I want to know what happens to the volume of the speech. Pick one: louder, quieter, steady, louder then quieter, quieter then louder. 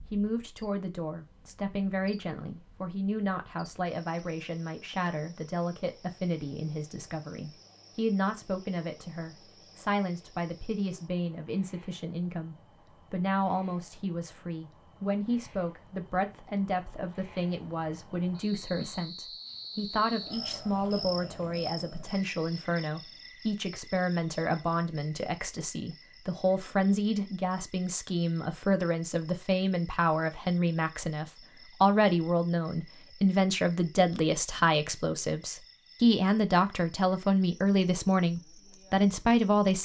louder.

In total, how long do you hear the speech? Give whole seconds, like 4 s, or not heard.
40 s.